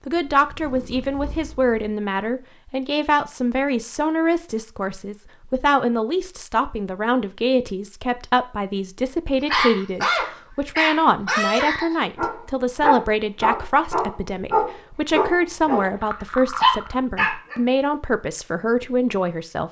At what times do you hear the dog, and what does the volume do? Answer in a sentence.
The dog can be heard from 9.4 to 15.9 s, at a steady volume; and briefly from 16.6 to 17.6 s.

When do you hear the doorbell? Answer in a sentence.
You can't hear the doorbell here.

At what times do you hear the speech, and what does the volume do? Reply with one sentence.
You can hear the speech from 0.1 to 19.6 s, at a steady volume.